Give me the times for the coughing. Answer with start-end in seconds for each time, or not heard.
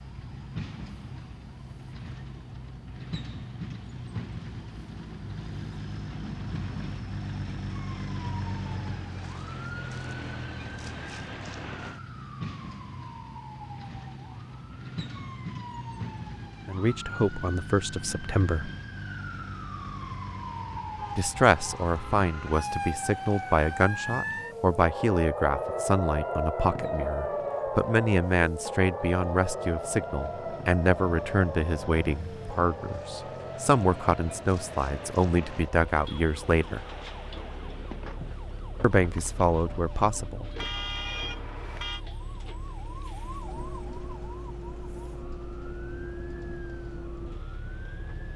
not heard.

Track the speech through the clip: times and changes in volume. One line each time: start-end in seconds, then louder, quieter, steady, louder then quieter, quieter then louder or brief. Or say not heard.
16.6-18.7 brief
21.1-36.8 steady
38.8-40.5 brief.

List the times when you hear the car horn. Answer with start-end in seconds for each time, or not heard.
20.9-22.6, 40.5-42.0.